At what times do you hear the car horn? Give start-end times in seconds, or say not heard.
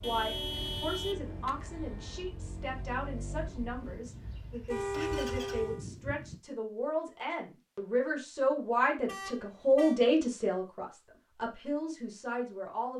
0.0-2.4, 4.7-5.8, 9.1-10.0.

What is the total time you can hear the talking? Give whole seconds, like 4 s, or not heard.
13 s.